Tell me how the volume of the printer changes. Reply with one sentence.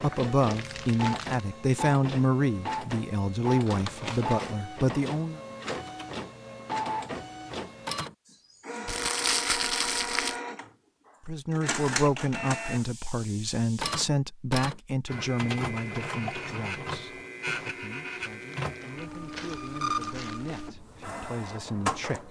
The loudness of the printer stays about the same.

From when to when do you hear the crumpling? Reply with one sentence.
You can hear the crumpling from 0.5 to 1.4 s, from 8.8 to 10.4 s and from 18.3 to 20.6 s.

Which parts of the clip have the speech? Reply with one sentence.
The speech can be heard from 0.0 to 5.4 s and from 11.2 to 22.2 s.